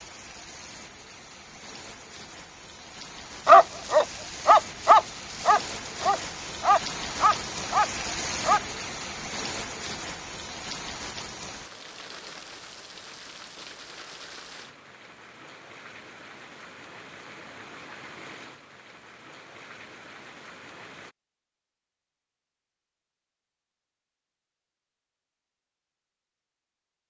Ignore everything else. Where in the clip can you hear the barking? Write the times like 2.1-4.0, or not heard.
3.5-8.6.